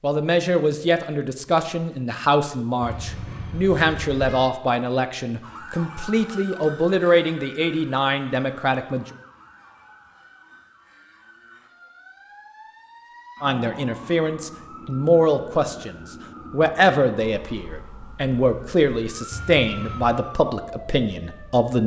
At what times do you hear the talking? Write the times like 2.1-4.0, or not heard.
0.0-9.1, 13.4-21.8.